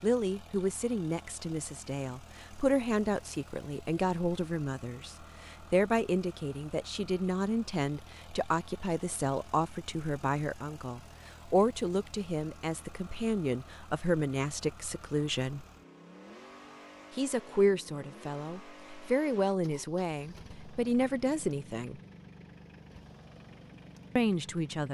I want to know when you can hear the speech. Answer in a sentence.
The speech can be heard from 0.0 to 15.7 s, from 17.1 to 22.0 s and from 24.1 to 24.8 s.